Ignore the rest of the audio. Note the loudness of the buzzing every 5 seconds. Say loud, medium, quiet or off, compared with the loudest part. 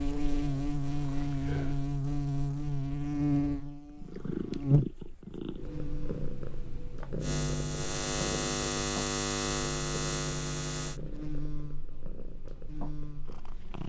loud, loud, medium.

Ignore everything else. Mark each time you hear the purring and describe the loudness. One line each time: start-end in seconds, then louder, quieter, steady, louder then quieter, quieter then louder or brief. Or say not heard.
0.1-1.9 brief
3.9-13.8 quieter.